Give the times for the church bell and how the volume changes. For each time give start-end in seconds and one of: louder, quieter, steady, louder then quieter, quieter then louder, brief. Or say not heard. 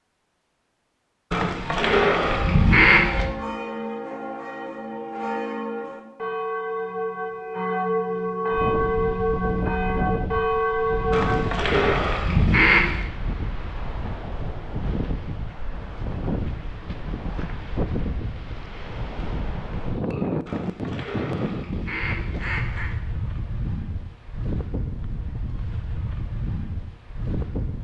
1.7-11.7 louder.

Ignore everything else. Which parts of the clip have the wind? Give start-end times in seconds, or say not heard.
8.5-27.8.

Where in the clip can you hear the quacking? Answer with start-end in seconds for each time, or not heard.
1.3-3.2, 11.1-13.1, 20.4-22.9.